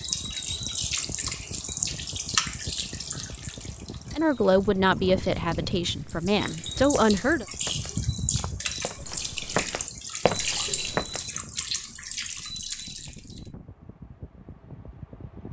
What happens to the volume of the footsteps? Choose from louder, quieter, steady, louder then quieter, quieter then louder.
louder.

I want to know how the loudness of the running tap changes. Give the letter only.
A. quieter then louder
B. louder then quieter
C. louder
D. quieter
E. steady
A.